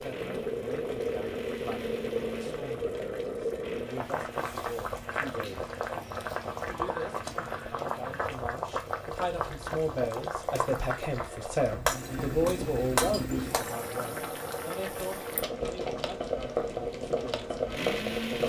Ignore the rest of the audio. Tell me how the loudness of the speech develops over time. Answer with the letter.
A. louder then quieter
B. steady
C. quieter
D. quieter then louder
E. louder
A.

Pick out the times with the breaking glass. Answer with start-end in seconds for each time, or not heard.
11.8-13.8.